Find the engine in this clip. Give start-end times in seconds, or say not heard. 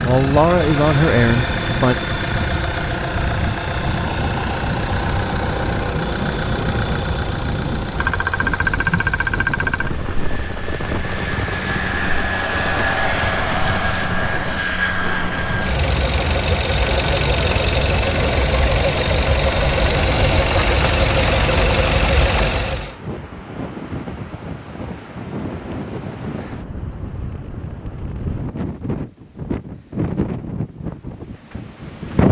0.0-22.9.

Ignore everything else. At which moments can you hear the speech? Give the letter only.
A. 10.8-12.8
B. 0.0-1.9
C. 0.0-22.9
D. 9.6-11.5
B.